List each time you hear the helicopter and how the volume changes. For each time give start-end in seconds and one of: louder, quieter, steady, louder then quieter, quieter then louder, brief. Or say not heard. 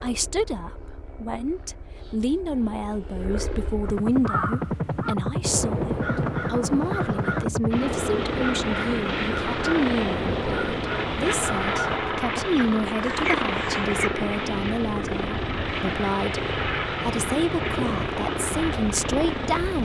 0.0-19.7 louder.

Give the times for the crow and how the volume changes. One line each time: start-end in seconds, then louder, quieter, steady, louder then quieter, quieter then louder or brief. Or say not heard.
3.9-13.9 steady.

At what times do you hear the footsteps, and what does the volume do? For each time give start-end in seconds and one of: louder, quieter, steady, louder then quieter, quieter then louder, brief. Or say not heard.
not heard.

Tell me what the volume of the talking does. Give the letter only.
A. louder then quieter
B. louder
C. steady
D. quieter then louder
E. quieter
C.